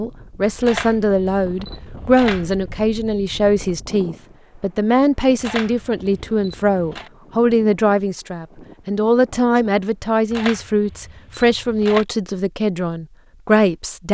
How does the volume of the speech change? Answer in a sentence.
The loudness of the speech stays about the same.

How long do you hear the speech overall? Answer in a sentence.
You can hear the speech for 14 seconds altogether.